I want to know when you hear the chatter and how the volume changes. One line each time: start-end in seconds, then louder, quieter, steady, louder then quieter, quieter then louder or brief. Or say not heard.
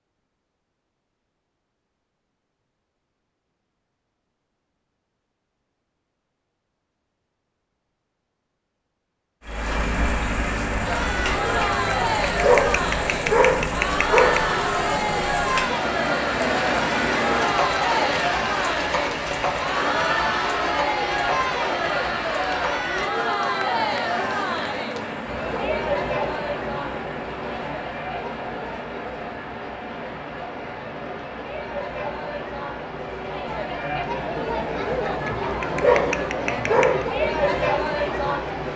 10.8-38.7 quieter then louder.